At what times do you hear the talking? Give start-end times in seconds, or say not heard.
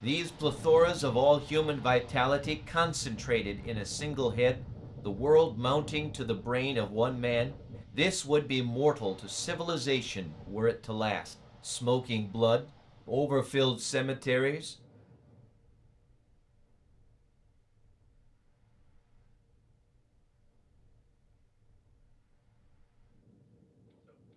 0.0-14.8.